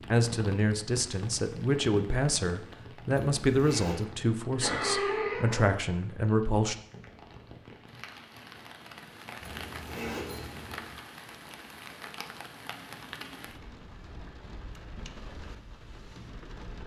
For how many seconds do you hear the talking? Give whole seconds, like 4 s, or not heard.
7 s.